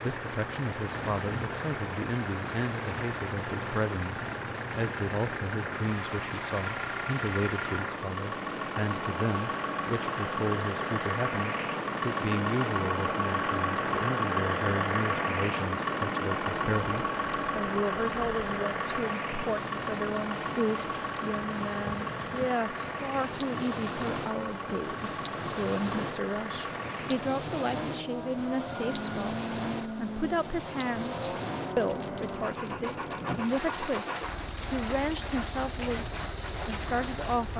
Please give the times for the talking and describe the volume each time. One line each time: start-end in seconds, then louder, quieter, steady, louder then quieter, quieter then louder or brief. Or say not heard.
0.0-37.5 steady.